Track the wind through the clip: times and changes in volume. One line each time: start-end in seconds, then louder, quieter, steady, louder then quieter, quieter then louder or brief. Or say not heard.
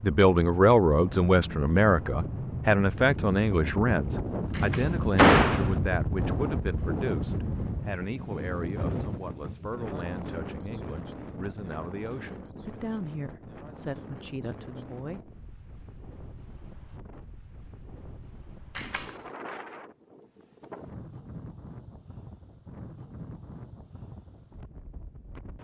0.0-25.5 quieter.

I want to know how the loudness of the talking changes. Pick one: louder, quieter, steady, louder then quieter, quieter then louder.
quieter.